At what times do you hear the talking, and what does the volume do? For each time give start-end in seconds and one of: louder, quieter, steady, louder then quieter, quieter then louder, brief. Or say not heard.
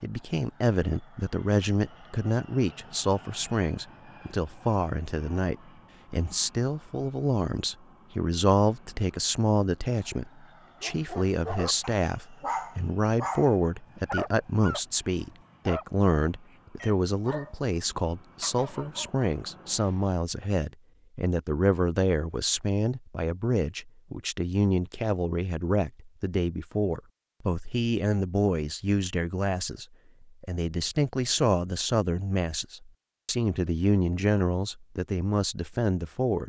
0.0-36.4 steady.